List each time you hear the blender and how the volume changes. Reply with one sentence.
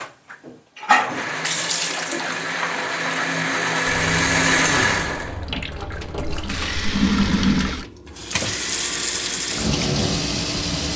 The blender can be heard from 0.0 to 10.9 s, getting louder then quieter.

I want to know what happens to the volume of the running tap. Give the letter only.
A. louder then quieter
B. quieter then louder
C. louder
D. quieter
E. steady
B.